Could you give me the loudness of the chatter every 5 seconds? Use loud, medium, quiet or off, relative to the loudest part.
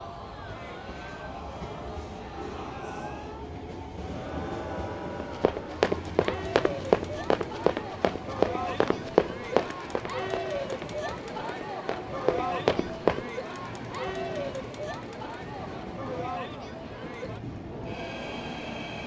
medium, loud, loud, medium.